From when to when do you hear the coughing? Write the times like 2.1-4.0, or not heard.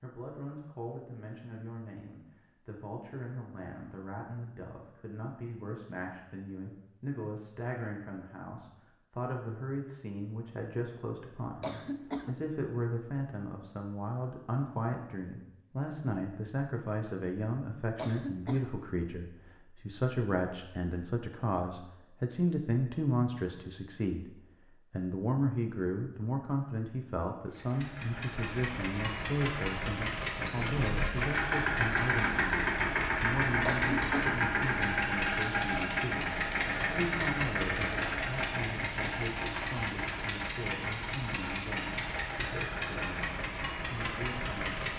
11.6-12.5, 17.9-18.9, 33.6-34.4.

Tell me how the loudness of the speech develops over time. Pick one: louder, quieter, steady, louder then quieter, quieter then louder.
louder then quieter.